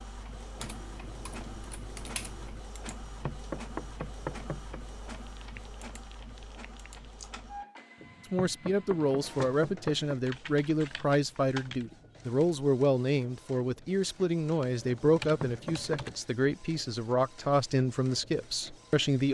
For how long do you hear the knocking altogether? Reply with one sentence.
You can hear the knocking for 5 seconds altogether.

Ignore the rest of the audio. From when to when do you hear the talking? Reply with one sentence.
You can hear the talking from 8.3 to 19.3 s.